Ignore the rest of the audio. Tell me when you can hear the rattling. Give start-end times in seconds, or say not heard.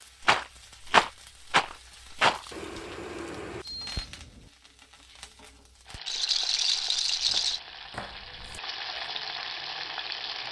0.2-2.4, 6.0-7.6.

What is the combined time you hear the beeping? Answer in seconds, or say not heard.
2 s.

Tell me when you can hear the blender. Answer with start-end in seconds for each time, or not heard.
not heard.